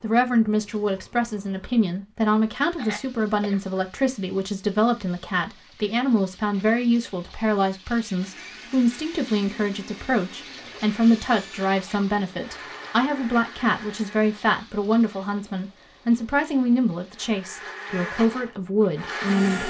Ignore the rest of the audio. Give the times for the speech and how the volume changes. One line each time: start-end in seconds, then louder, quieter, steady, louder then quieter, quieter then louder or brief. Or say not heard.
0.0-19.6 steady.